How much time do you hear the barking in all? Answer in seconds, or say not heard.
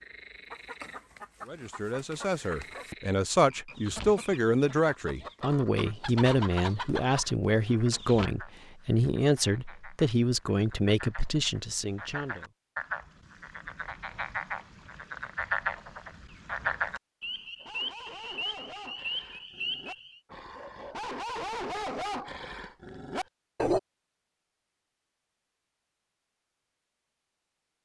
6 s.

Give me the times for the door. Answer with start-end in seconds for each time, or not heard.
not heard.